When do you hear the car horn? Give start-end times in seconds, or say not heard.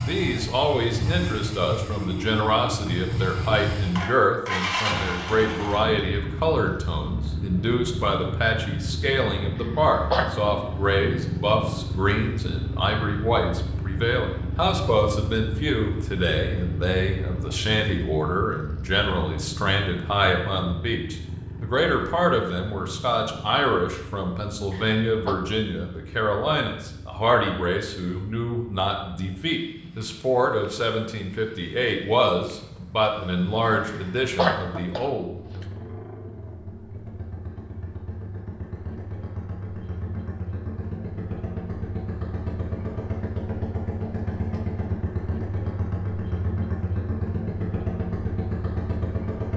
not heard.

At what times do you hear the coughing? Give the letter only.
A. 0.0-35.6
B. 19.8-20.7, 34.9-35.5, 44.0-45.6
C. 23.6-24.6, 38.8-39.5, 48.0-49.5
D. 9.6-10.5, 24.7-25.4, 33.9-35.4
D.